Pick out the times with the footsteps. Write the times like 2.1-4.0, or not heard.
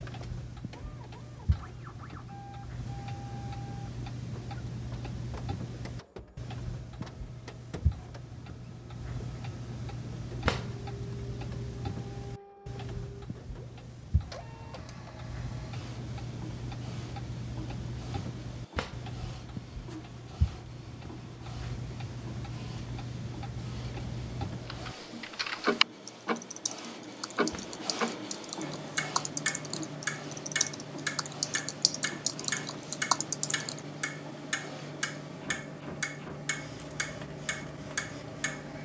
not heard.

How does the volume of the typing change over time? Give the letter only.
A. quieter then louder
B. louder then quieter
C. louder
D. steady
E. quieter
A.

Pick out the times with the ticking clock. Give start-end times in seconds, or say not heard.
0.0-38.8.